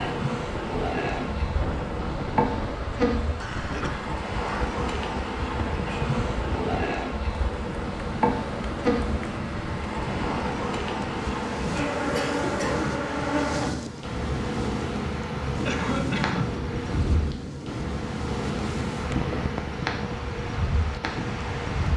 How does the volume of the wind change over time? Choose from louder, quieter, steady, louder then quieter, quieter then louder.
steady.